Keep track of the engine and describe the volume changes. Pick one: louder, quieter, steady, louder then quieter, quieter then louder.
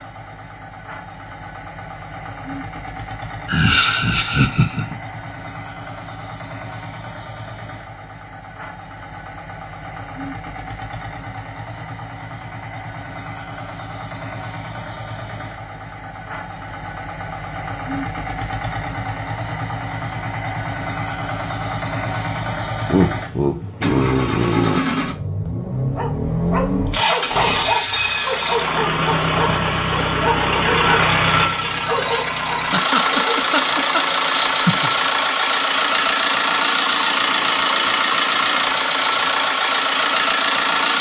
louder.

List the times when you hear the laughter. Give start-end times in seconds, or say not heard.
3.5-5.0, 22.9-24.8, 32.5-34.9.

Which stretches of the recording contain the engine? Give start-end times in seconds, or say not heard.
0.0-40.9.